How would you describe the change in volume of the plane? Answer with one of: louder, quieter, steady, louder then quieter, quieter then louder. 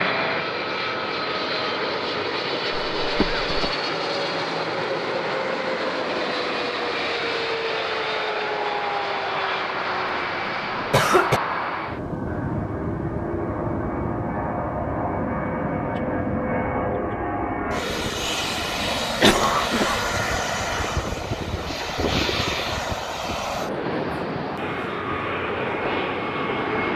steady.